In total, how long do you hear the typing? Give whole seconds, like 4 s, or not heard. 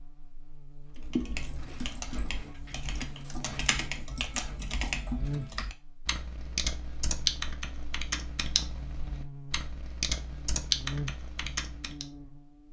11 s.